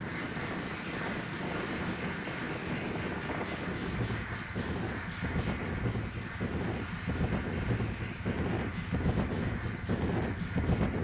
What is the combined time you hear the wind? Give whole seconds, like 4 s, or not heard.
11 s.